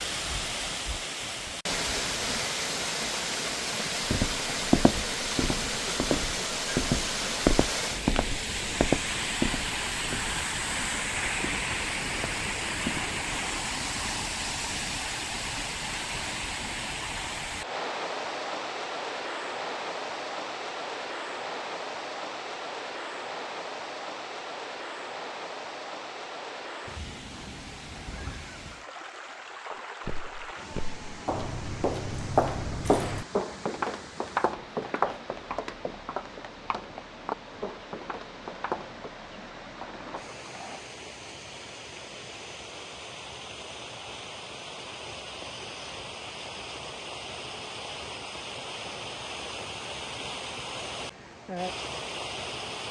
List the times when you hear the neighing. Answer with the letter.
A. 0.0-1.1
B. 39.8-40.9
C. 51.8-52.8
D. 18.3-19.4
B.